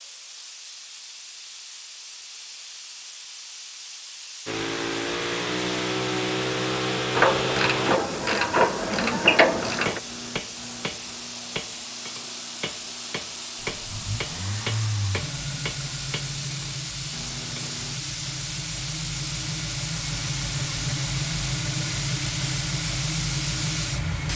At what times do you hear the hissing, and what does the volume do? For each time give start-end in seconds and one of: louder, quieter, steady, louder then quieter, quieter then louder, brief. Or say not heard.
0.0-24.3 louder.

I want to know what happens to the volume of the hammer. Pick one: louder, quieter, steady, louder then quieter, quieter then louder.
quieter.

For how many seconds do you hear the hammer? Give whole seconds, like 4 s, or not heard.
9 s.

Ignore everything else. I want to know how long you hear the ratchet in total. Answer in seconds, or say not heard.
3 s.